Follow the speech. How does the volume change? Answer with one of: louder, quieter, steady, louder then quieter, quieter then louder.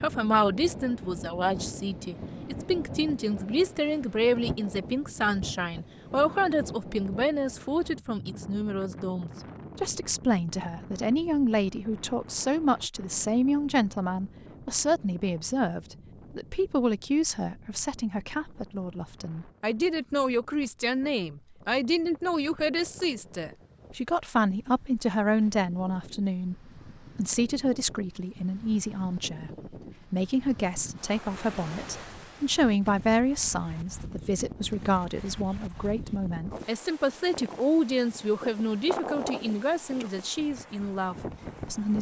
steady.